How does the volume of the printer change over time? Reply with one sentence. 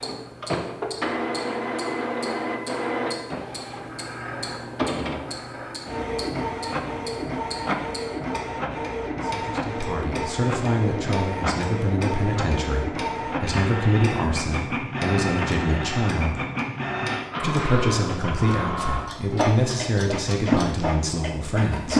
The volume of the printer stays about the same.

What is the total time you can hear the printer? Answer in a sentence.
The printer can be heard for 22 seconds in total.